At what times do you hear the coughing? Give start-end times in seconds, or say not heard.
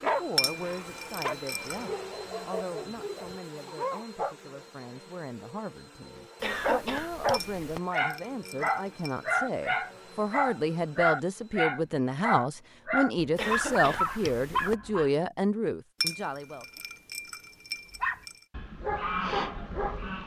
6.4-7.8, 13.3-14.8.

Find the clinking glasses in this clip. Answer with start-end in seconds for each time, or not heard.
0.3-1.9, 7.3-9.3, 16.0-18.4.